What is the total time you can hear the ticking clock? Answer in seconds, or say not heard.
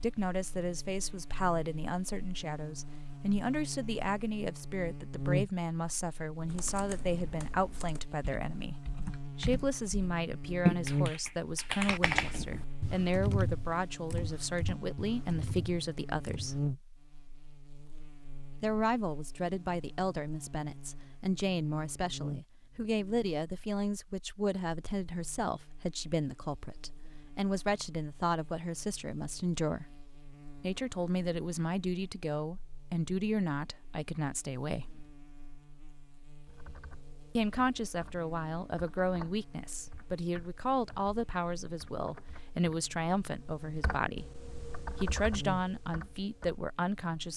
not heard.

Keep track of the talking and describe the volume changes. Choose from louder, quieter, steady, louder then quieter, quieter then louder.
steady.